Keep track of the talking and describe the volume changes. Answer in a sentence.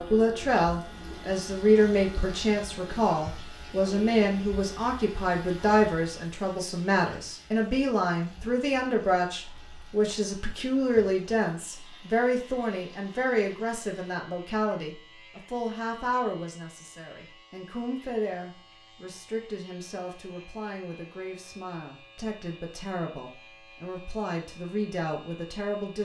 The volume of the talking goes down.